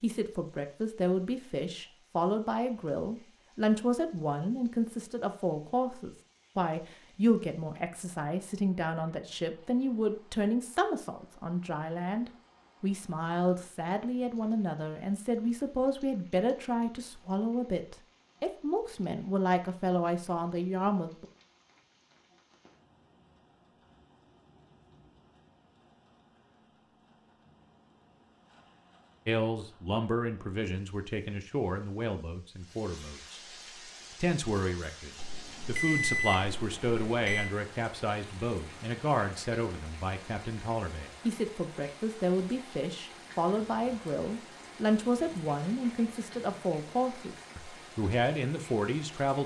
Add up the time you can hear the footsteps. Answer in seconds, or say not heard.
not heard.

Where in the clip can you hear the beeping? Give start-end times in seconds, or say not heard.
35.1-37.5.